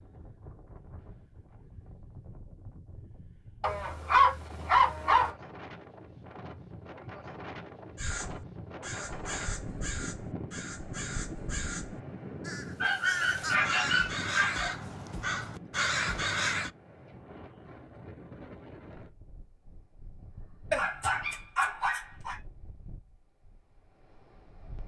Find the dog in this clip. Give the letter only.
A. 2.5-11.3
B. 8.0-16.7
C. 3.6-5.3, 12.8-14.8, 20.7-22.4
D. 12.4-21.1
C.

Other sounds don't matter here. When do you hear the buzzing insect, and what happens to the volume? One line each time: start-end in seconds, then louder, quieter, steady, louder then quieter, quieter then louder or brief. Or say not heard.
not heard.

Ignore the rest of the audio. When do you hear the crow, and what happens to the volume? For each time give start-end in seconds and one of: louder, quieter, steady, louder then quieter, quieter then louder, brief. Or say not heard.
8.0-16.7 louder.